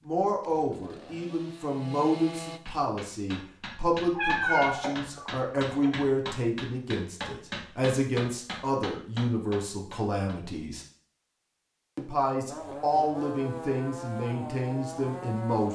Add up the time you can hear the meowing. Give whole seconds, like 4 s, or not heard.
2 s.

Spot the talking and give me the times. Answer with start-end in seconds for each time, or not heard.
0.0-10.8, 11.9-15.7.